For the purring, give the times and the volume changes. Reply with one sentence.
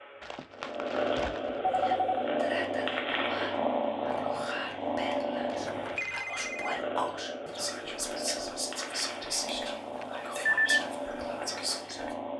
You can hear the purring from 0.0 to 12.3 s, getting quieter.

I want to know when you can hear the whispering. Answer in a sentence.
You can hear the whispering from 1.7 to 12.2 s.